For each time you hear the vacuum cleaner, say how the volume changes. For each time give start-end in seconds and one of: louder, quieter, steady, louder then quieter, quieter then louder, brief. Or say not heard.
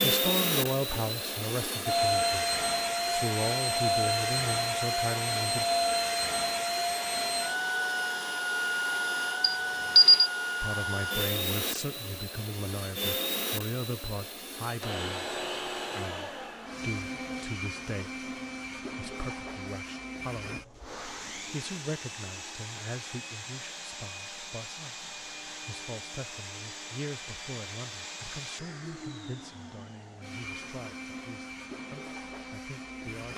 0.0-33.3 quieter.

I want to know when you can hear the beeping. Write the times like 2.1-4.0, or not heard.
9.4-10.3.